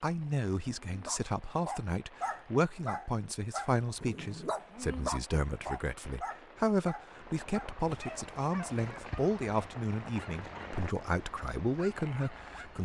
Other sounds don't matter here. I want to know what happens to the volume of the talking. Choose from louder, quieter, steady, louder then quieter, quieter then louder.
steady.